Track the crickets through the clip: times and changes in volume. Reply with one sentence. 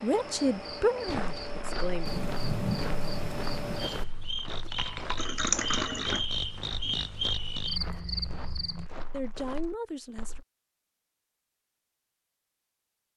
You can hear the crickets from 0.0 to 8.9 s, getting louder.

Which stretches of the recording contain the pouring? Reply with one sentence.
The pouring can be heard from 5.2 to 6.2 s.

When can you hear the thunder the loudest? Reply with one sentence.
The volume of the thunder peaks at 3 seconds.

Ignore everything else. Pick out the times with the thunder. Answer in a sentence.
The thunder can be heard from 2.0 to 4.0 s.